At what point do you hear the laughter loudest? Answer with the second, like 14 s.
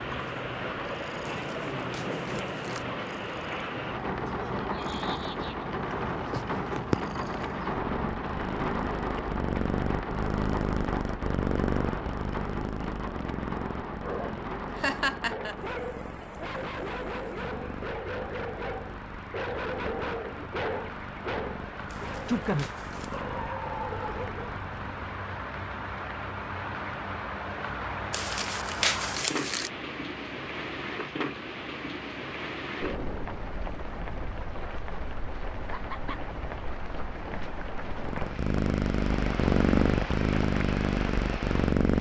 15 s.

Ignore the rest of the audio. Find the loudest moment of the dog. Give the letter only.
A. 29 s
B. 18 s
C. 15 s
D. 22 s
D.